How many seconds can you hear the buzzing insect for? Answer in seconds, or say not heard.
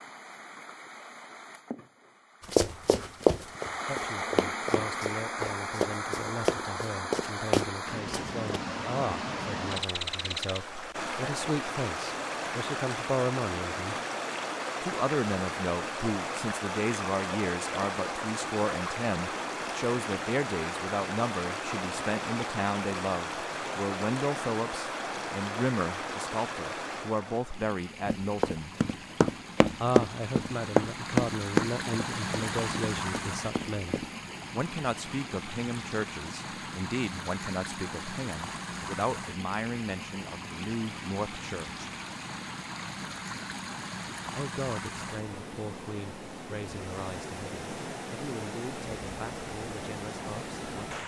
not heard.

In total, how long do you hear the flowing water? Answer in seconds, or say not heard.
51 s.